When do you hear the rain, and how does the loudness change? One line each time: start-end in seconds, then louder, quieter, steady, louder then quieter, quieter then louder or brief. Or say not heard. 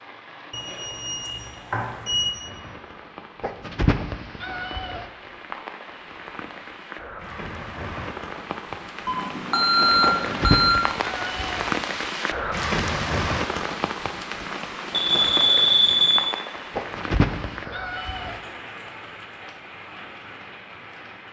0.0-21.2 louder then quieter.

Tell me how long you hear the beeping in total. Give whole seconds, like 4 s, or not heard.
5 s.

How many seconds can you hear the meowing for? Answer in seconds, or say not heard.
5 s.